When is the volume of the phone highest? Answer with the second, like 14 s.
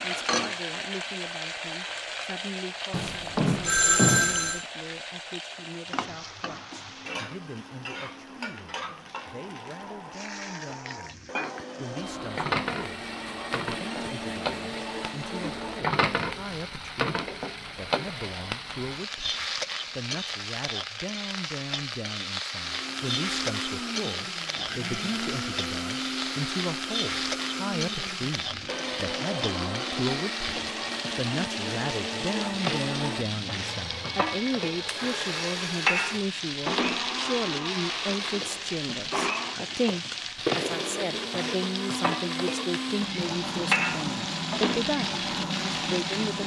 4 s.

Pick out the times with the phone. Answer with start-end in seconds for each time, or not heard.
2.9-4.6, 33.5-35.5.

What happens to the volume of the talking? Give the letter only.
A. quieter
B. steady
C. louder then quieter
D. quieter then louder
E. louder
E.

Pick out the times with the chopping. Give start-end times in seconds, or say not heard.
not heard.